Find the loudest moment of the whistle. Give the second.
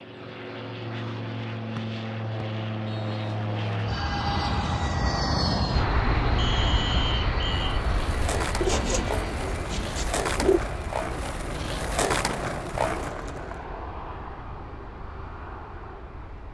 7 s.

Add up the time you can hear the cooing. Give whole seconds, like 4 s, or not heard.
2 s.